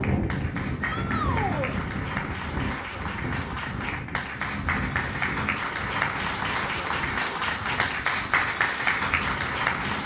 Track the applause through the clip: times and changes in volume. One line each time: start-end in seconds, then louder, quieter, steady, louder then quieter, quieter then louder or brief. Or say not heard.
0.0-10.0 louder.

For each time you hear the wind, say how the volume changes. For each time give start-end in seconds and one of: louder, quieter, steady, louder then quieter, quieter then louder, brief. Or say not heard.
0.0-10.0 quieter.